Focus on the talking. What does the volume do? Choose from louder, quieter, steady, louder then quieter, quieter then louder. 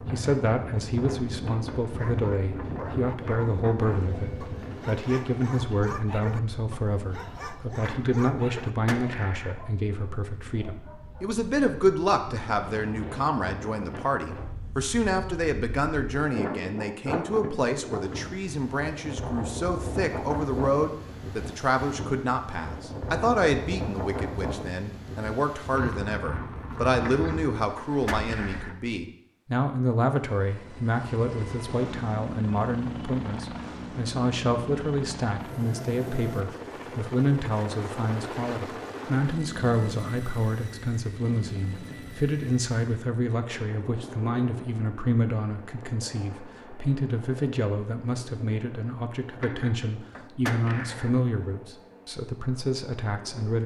steady.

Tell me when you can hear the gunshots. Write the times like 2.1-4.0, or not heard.
7.7-9.6, 26.9-28.8, 49.2-51.1.